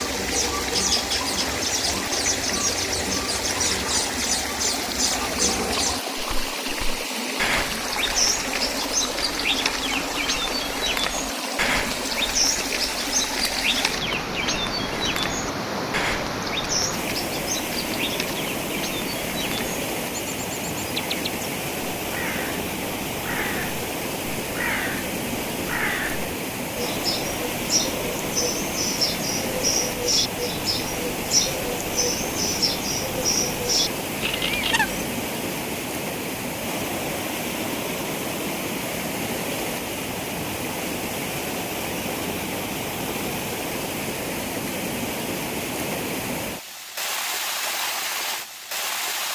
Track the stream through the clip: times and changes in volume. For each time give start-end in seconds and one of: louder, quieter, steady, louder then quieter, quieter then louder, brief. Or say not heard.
0.0-49.3 steady.